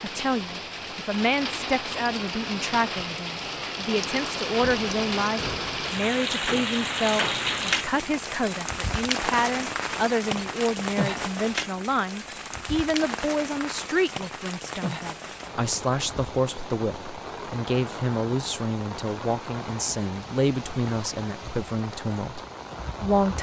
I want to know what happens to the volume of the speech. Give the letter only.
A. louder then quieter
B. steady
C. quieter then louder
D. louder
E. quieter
B.